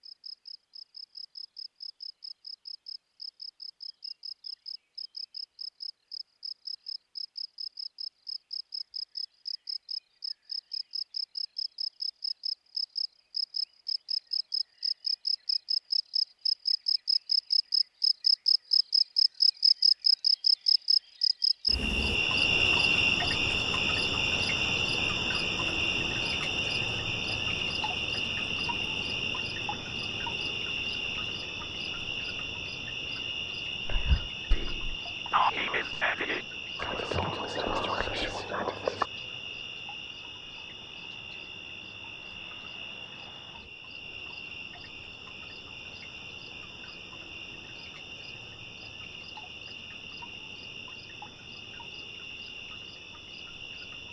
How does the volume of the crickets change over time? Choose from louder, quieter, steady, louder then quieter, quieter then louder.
louder then quieter.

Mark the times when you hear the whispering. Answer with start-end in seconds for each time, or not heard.
33.9-39.1.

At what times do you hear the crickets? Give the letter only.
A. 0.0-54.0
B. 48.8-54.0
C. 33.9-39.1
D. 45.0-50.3
A.